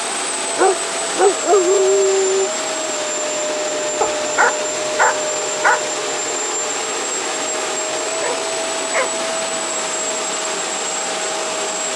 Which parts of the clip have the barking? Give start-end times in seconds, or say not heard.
0.6-2.5, 4.0-5.8, 8.2-9.2.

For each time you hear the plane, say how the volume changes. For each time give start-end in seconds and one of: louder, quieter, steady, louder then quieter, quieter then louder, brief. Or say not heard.
0.0-11.9 steady.